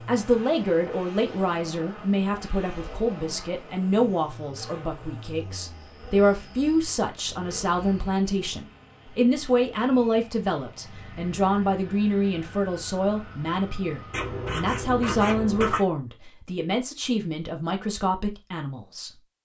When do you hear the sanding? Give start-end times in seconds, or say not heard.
14.1-15.8.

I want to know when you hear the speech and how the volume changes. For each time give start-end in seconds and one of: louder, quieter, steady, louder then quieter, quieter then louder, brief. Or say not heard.
0.1-19.1 steady.